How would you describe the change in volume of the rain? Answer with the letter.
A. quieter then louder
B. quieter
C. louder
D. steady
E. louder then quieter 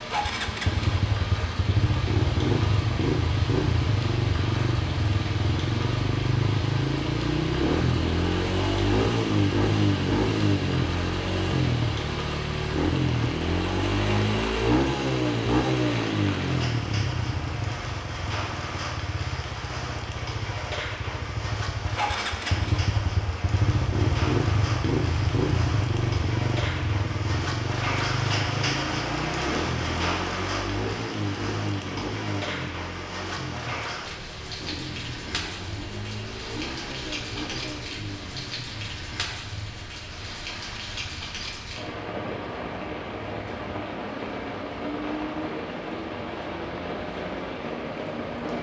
D.